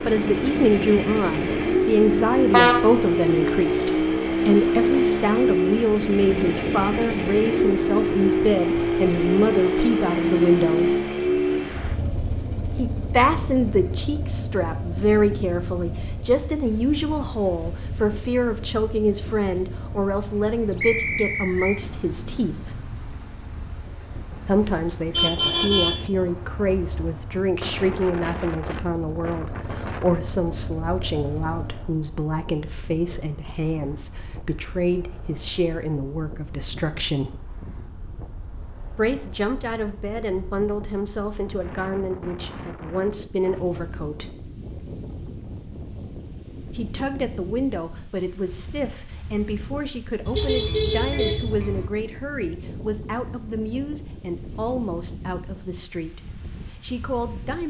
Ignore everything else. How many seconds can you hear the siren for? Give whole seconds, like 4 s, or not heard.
not heard.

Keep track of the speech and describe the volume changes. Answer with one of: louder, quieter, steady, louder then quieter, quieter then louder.
quieter.